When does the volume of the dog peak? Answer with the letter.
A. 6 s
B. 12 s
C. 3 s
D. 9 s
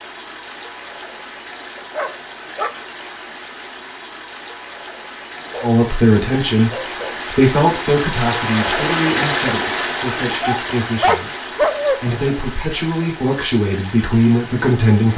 B.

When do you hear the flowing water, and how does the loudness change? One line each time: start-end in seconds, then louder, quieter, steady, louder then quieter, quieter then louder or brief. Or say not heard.
0.0-15.1 louder then quieter.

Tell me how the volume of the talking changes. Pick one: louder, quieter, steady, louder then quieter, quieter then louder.
quieter then louder.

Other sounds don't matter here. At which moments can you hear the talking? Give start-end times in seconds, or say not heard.
5.6-15.1.